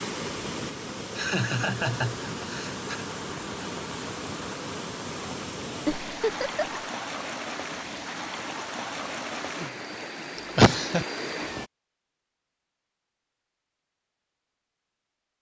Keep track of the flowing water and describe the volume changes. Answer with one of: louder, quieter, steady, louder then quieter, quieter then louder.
steady.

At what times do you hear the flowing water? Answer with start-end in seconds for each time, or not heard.
0.0-11.7.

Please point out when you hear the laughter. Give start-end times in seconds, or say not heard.
1.1-3.0, 5.8-6.8, 10.3-11.1.